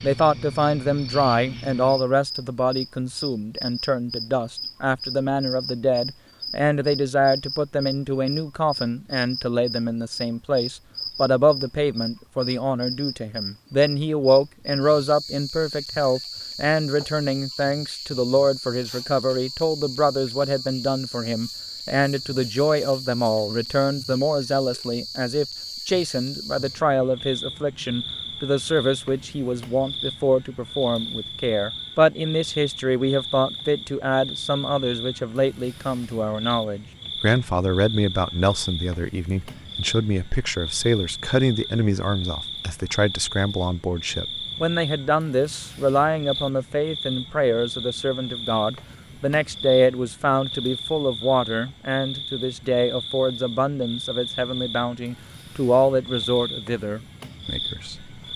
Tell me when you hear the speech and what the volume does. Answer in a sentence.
You can hear the speech from 0.0 to 58.1 s, at a steady volume.